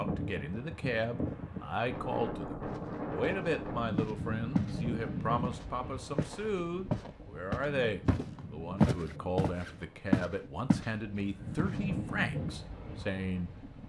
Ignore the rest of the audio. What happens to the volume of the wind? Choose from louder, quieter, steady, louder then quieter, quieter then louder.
quieter then louder.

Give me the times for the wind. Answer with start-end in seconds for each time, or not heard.
0.0-13.8.